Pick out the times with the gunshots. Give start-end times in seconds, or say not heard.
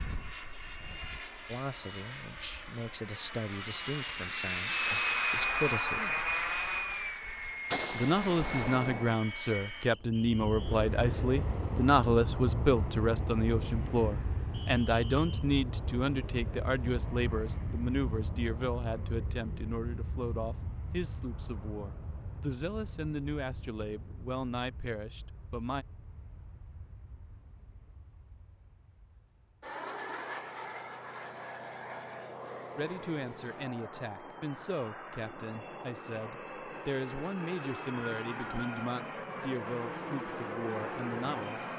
7.7-9.2.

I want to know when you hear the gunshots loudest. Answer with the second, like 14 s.
8 s.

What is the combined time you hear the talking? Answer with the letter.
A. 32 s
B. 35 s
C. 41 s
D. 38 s
A.